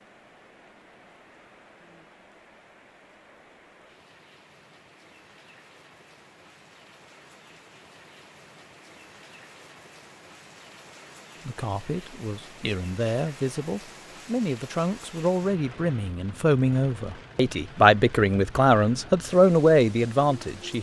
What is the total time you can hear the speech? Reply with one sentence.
The speech can be heard for 9 seconds in total.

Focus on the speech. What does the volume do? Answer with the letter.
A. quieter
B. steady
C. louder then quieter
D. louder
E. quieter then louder
D.